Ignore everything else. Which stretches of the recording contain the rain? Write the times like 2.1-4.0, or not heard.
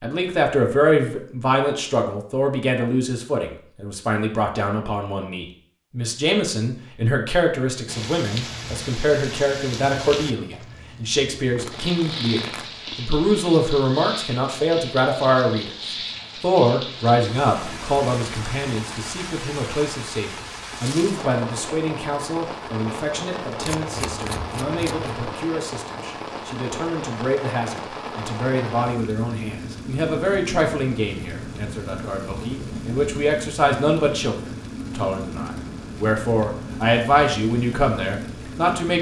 7.8-38.9.